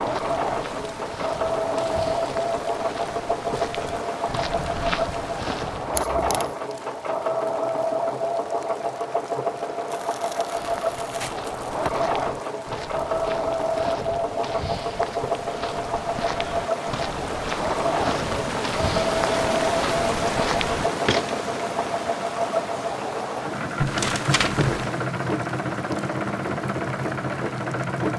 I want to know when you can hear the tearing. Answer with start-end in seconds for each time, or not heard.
6.0-6.5, 9.9-11.9, 23.8-24.9.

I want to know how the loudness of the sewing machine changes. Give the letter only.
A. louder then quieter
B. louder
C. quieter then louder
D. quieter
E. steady
E.